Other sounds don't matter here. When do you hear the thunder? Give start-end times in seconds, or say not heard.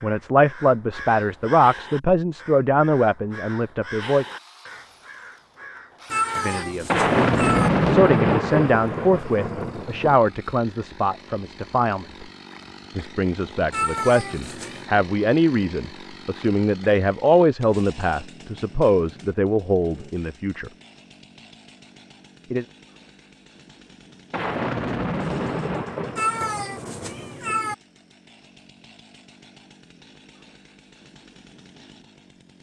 6.8-10.2, 24.3-27.6.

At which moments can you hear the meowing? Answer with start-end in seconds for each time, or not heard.
6.1-7.7, 13.7-14.8, 26.1-27.8.